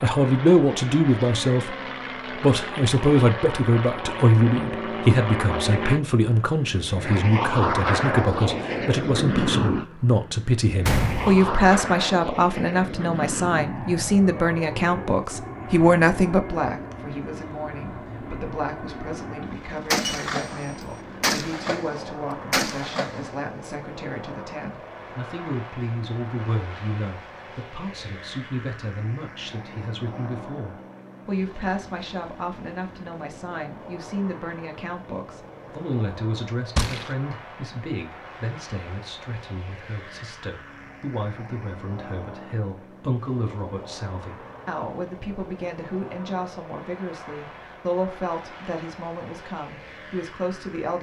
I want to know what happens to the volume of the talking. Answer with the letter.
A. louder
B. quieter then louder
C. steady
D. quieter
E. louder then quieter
D.